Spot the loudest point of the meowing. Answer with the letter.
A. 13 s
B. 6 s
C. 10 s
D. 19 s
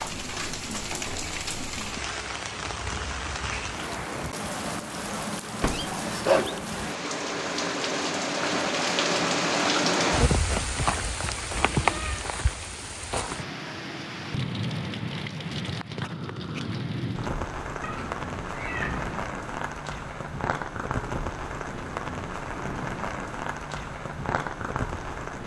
B.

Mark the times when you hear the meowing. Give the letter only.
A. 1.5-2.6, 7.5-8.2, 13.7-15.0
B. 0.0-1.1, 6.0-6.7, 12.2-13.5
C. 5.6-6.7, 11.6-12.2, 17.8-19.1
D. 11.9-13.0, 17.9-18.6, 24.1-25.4
C.